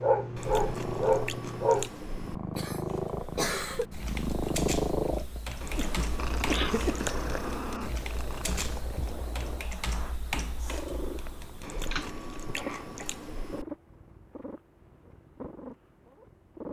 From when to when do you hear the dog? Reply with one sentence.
You can hear the dog from 0.0 to 1.9 s.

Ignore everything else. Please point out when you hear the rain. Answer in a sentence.
The rain can't be heard in this clip.